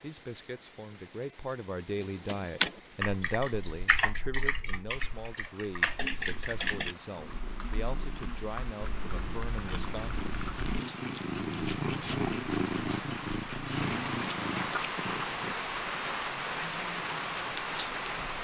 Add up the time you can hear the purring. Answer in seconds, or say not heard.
9 s.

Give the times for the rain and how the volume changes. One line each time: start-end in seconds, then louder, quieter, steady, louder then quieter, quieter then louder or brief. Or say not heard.
0.0-18.4 louder.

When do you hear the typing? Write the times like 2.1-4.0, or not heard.
1.9-10.7.